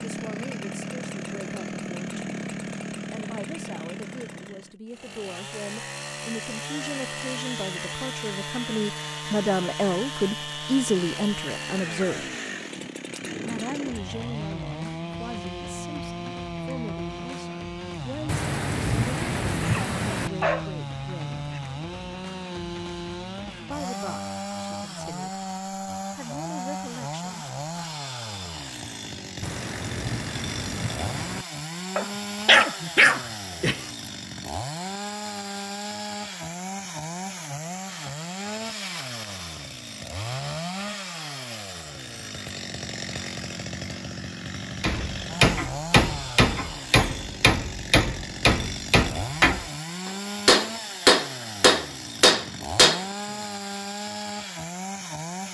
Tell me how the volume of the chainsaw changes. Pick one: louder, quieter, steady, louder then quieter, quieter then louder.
steady.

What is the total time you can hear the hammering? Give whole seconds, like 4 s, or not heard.
8 s.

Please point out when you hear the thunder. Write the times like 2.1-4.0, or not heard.
18.2-20.3, 29.4-31.4.